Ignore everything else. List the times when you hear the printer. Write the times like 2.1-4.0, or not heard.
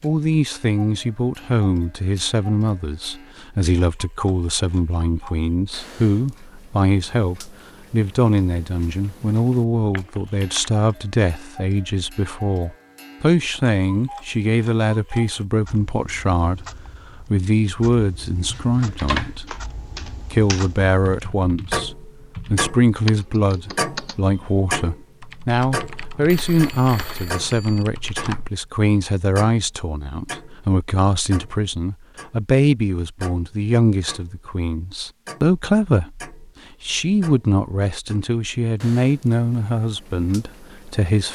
not heard.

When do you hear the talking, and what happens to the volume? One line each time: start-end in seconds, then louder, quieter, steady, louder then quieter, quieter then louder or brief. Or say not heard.
0.0-41.3 steady.